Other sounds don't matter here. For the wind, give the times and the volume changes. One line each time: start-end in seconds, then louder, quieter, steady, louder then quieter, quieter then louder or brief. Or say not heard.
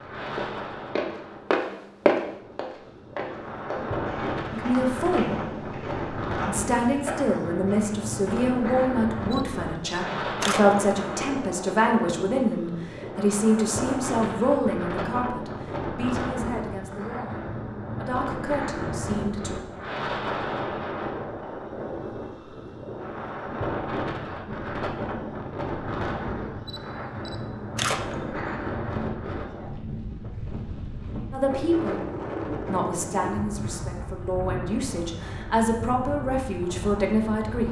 0.0-37.6 steady.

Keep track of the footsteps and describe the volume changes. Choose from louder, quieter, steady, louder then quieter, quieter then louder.
quieter.